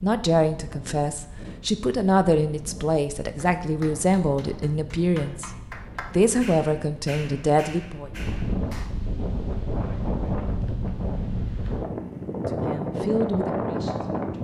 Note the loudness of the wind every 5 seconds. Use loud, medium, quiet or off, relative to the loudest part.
quiet, medium, loud.